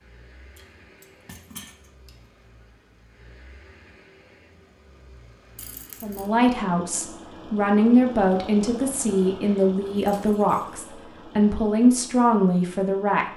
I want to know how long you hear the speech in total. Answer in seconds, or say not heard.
7 s.